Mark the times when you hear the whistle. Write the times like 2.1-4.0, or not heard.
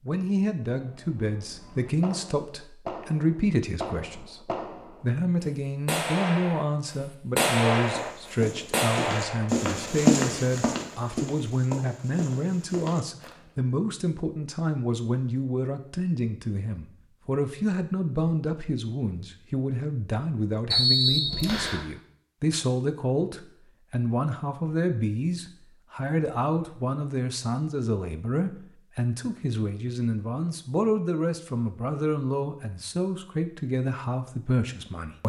20.7-21.9.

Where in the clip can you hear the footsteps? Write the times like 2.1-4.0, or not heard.
7.8-13.4.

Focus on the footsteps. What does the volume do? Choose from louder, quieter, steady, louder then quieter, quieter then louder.
louder then quieter.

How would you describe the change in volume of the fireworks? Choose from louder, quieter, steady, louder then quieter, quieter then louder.
louder.